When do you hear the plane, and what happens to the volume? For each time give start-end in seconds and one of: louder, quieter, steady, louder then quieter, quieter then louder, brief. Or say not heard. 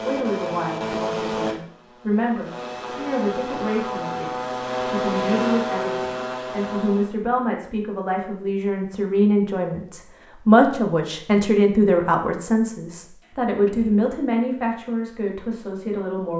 0.0-7.2 quieter then louder.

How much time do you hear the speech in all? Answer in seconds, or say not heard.
16 s.